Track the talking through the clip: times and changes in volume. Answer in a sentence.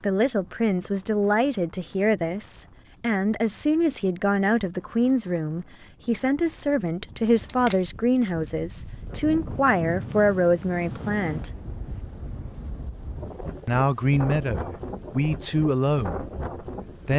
You can hear the talking from 0.0 to 11.5 s, at a steady volume; and briefly from 13.7 to 16.2 s.